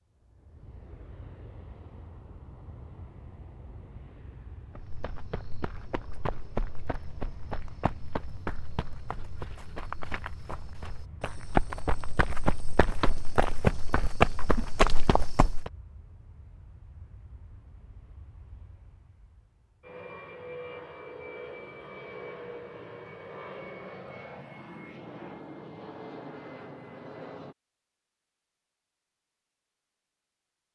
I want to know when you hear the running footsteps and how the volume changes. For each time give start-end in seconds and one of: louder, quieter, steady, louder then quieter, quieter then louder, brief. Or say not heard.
4.8-15.7 louder.